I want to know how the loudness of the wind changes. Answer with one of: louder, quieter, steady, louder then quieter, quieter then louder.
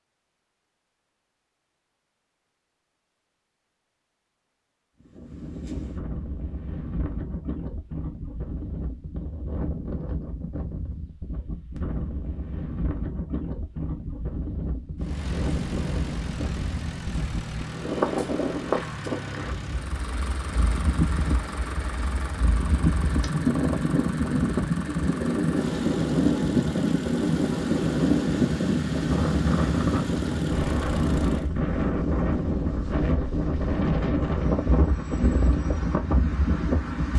louder.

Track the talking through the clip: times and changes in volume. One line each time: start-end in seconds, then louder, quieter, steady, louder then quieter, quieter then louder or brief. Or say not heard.
not heard.